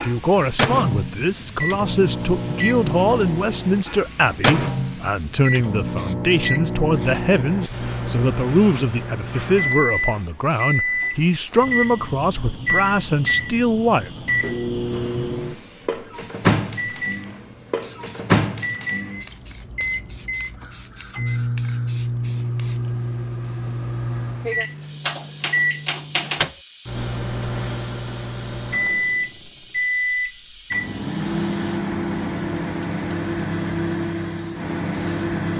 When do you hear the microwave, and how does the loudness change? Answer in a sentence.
You can hear the microwave from 0.0 to 35.5 s, at a steady volume.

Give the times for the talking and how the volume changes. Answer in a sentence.
You can hear the talking from 0.0 to 14.1 s, at a steady volume.